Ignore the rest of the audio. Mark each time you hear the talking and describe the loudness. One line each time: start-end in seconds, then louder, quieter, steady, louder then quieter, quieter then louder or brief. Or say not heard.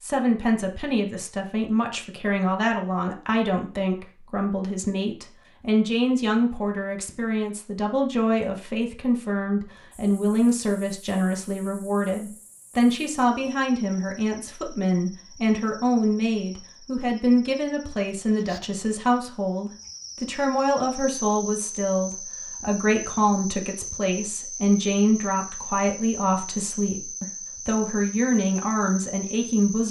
0.0-29.8 steady.